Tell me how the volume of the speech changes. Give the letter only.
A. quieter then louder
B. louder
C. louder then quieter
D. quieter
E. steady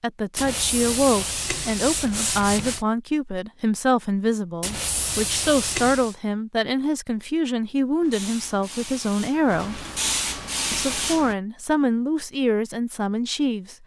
E.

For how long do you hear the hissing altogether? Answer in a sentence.
You can hear the hissing for 3 seconds altogether.